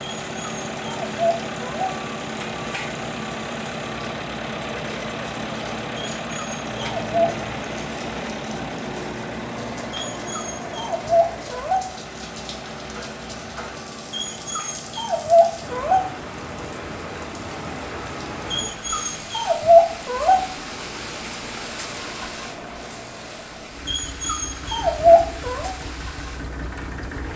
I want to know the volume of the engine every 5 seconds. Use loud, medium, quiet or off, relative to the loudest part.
loud, loud, medium, medium, medium, medium.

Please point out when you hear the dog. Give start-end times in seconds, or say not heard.
0.0-1.9, 6.0-7.3, 9.9-11.8, 14.1-16.0, 18.5-20.4, 23.9-25.7.